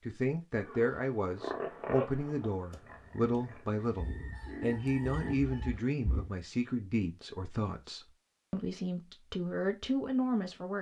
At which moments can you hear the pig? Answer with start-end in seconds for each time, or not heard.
0.7-6.3.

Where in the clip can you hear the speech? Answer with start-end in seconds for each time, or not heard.
0.0-10.7.